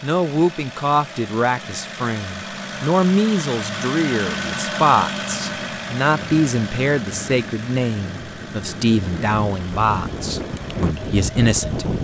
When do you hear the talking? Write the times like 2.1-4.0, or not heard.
0.0-11.9.